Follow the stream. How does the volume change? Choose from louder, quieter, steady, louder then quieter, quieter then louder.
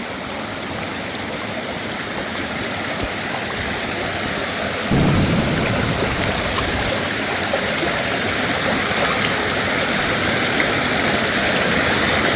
louder.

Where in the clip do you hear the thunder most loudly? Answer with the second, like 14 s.
5 s.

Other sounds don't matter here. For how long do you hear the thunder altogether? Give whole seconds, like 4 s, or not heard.
2 s.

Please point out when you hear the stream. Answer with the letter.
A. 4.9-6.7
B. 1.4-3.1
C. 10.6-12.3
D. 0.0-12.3
D.